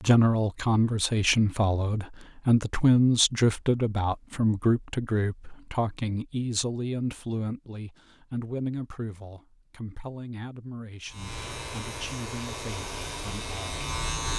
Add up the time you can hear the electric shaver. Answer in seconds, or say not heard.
3 s.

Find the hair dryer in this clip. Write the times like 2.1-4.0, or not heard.
11.2-14.2.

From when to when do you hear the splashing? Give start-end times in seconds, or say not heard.
not heard.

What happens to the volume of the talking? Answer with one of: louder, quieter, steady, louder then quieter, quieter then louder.
quieter.